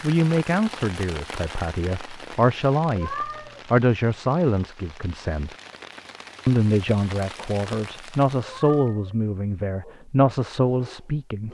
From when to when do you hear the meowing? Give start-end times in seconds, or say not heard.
2.9-3.6, 8.4-9.2.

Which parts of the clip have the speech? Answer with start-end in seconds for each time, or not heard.
0.0-5.5, 6.5-11.4.